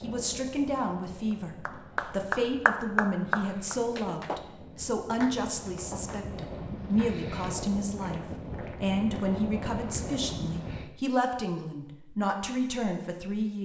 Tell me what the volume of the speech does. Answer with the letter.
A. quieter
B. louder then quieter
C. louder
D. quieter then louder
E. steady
E.